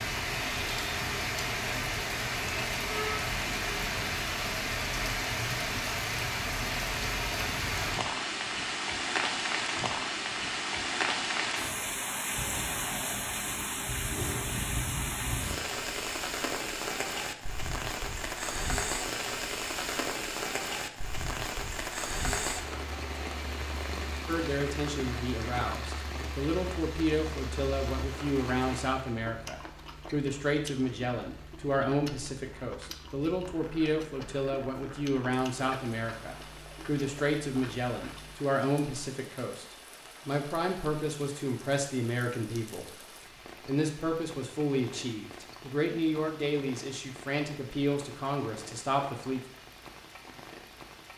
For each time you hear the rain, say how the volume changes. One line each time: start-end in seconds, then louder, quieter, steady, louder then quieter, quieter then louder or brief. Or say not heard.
0.0-51.1 quieter.